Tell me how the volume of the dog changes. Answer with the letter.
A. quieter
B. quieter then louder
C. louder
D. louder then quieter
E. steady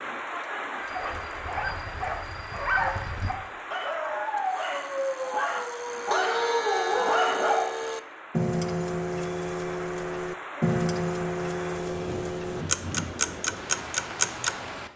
C.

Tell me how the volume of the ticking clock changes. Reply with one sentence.
The volume of the ticking clock goes up.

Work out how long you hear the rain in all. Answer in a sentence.
The rain can be heard for 15 seconds in total.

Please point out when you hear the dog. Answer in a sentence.
The dog can be heard from 0.9 to 7.9 s.